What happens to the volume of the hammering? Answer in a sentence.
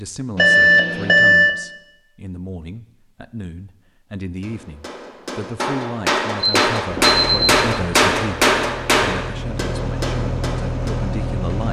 The loudness of the hammering goes up, then down.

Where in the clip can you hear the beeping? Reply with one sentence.
The beeping can be heard from 0.3 to 1.5 s and from 6.4 to 7.7 s.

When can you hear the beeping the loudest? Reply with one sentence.
The loudest moment of the beeping is at 1 second.